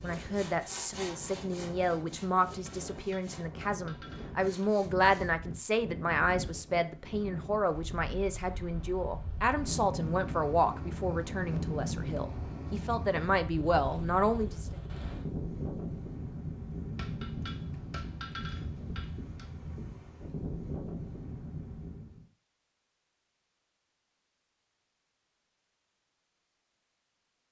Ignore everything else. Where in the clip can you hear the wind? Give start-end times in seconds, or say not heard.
0.0-22.2.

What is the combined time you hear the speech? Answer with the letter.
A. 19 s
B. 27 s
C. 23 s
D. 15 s
D.